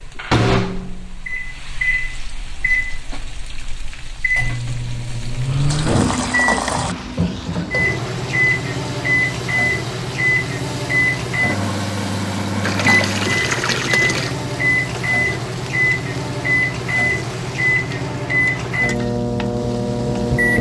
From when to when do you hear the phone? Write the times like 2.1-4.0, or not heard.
not heard.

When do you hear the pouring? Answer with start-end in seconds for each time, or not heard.
5.5-7.0, 12.6-14.3.